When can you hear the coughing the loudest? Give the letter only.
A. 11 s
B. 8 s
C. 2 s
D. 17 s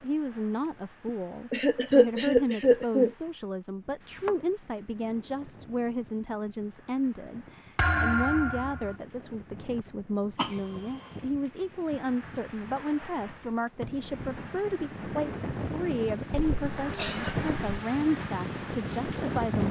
C.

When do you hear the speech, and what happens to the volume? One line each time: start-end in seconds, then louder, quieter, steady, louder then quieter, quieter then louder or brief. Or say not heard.
0.0-19.6 steady.